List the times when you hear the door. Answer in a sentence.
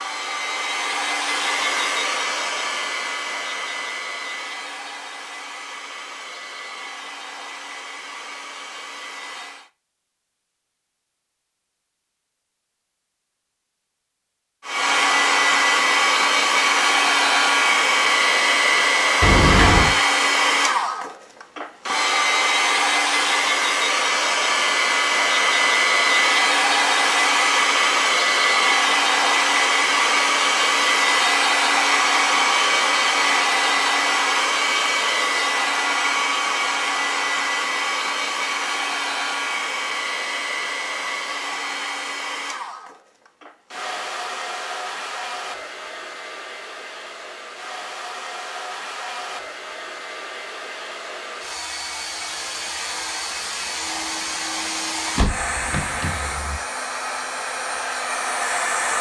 The door can be heard from 19.2 to 19.9 s and from 55.1 to 56.6 s.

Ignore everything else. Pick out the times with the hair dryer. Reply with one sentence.
The hair dryer can be heard from 0.0 to 9.7 s and from 14.7 to 58.9 s.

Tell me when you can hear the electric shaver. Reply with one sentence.
The electric shaver can't be heard in this clip.